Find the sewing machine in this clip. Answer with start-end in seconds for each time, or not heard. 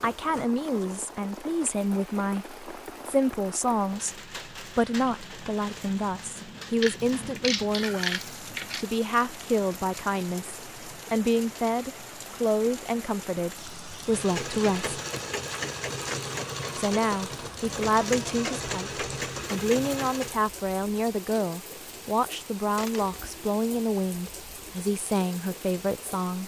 14.1-20.4.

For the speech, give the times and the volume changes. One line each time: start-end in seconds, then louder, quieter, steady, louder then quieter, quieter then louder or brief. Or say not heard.
0.0-14.9 steady
16.8-26.4 steady.